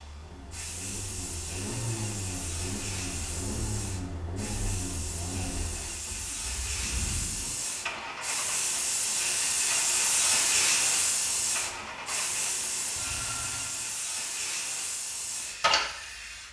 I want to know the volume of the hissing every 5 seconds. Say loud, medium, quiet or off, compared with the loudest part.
medium, loud, loud, loud.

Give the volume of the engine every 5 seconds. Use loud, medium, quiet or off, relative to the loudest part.
loud, loud, loud, off.